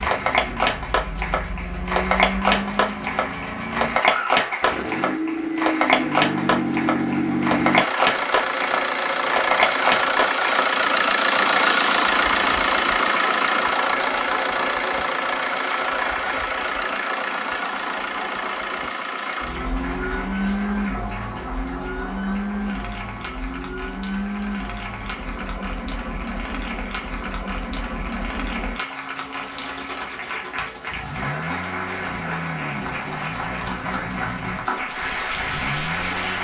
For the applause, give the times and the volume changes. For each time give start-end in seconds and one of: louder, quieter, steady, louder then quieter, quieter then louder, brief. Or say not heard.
0.0-36.4 quieter then louder.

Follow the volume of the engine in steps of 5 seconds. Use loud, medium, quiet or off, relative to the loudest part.
medium, loud, loud, medium, medium, quiet, quiet, quiet.